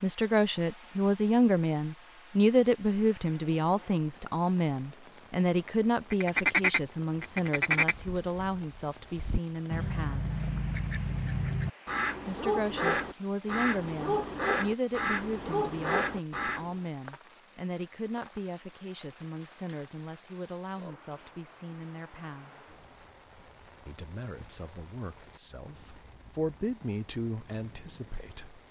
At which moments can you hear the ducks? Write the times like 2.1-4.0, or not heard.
6.1-16.8.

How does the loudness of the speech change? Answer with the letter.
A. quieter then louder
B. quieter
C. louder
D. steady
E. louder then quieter
B.